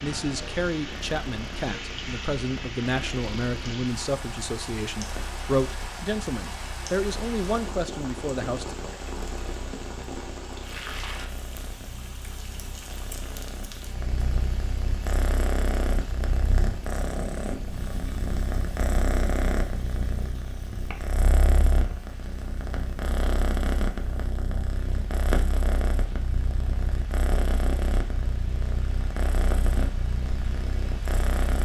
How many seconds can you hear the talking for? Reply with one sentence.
You can hear the talking for 9 seconds altogether.